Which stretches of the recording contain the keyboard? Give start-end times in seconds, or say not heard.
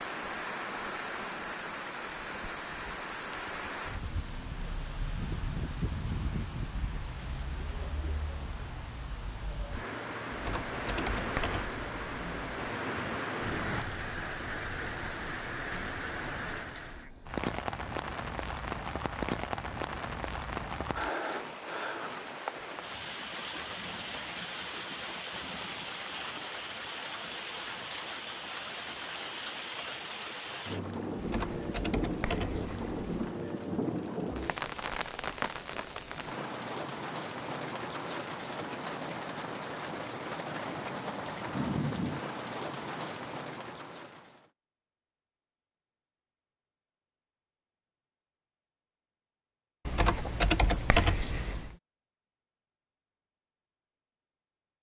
10.3-12.5, 31.1-33.4, 49.9-51.8.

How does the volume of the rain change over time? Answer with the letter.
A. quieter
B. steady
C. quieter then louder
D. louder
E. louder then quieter
B.